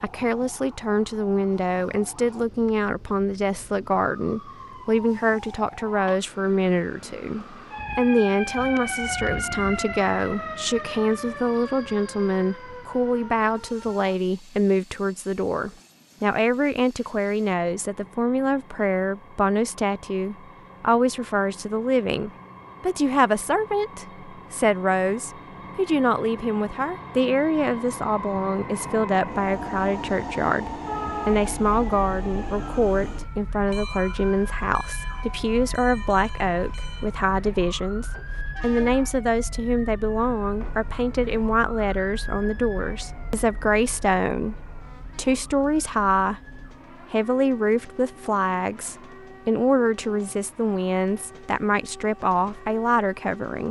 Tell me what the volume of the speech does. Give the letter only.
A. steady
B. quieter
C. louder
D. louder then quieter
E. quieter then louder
A.